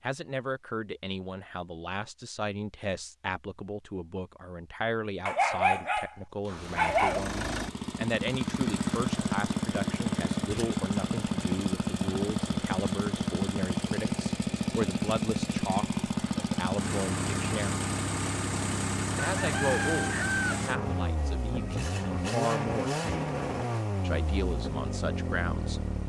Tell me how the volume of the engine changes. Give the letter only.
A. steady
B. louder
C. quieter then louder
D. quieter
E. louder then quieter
A.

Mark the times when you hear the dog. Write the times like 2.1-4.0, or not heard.
5.2-7.2.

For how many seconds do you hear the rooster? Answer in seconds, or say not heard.
2 s.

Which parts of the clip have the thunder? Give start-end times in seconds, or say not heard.
not heard.